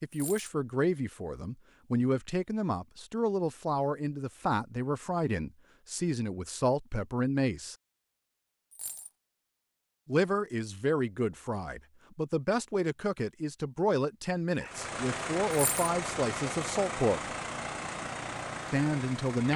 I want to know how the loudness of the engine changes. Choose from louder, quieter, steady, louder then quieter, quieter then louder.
steady.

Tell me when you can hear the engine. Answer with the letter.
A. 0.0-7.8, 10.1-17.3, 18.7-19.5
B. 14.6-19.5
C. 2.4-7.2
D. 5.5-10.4
B.